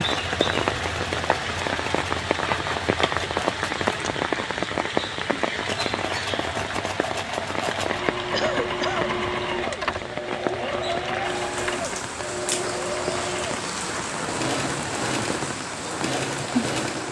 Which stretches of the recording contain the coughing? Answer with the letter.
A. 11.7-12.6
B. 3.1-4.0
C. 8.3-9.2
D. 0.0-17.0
C.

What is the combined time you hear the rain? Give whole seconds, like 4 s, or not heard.
17 s.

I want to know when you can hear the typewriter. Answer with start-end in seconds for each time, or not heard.
not heard.